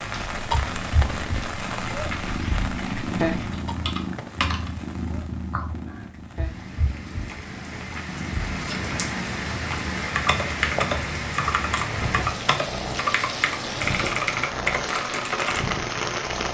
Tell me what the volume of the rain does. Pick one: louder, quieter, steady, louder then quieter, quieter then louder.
quieter then louder.